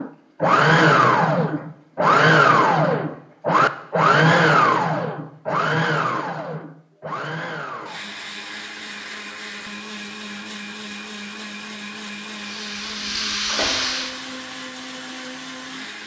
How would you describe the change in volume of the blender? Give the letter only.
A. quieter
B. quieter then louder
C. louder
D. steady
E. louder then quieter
A.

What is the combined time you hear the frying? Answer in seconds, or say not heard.
2 s.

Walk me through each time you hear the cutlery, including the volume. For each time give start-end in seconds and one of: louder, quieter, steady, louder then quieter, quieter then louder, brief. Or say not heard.
not heard.